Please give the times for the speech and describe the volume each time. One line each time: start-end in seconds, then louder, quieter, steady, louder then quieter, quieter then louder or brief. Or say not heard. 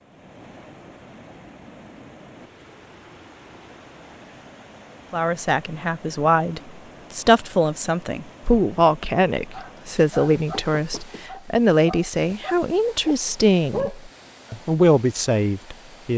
5.1-16.1 steady.